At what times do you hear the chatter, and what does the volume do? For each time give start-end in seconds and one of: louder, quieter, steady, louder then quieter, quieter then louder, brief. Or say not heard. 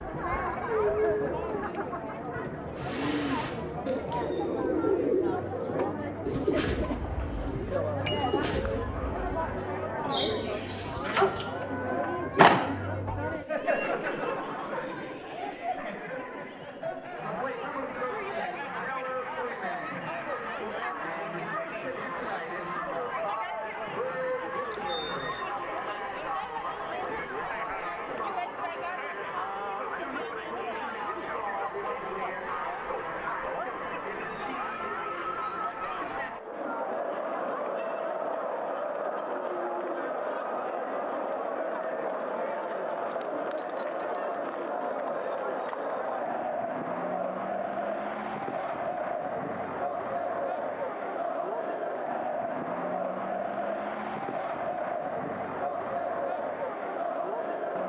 0.0-57.8 steady.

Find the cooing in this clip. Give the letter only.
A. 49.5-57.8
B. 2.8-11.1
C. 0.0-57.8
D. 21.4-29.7
B.